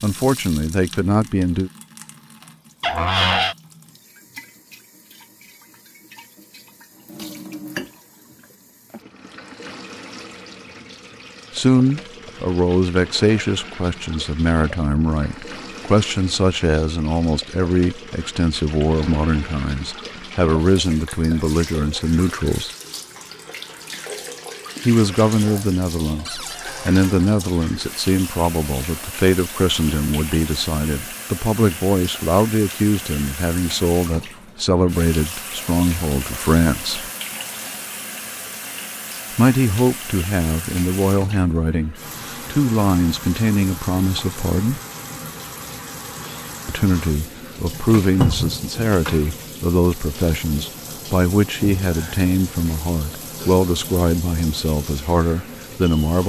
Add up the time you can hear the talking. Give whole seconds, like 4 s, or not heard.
40 s.